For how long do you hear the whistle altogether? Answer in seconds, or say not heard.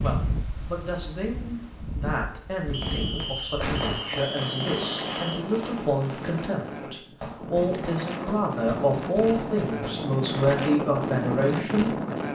3 s.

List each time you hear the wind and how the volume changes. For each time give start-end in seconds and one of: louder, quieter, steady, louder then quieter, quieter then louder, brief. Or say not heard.
0.0-12.3 louder.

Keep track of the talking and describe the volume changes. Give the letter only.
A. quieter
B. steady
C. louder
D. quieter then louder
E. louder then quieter
C.